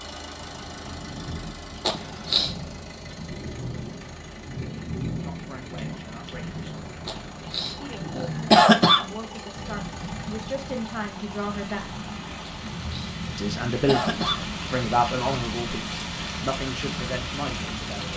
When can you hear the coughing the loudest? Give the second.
9 s.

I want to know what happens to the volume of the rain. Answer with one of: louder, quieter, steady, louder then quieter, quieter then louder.
louder.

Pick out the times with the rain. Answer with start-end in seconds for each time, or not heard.
0.0-18.1.